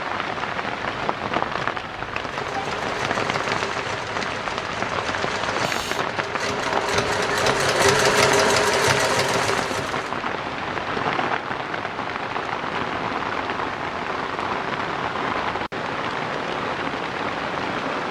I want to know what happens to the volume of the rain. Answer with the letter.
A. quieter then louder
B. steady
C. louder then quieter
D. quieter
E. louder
B.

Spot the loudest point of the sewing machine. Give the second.
8 s.